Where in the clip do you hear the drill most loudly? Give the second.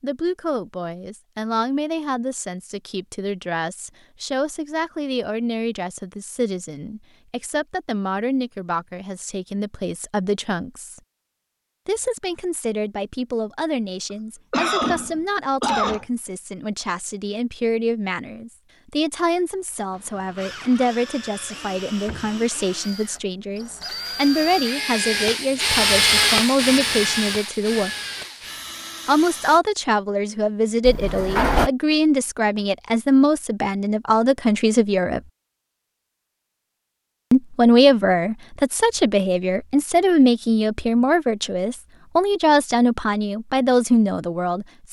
26 s.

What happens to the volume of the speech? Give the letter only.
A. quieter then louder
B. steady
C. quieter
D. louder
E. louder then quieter
D.